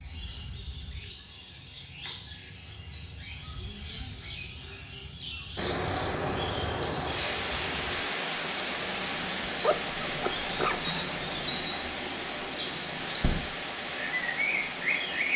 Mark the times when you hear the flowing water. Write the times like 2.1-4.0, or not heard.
5.5-15.3.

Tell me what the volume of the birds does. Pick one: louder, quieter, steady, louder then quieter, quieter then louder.
louder.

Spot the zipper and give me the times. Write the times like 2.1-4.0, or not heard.
9.4-11.1.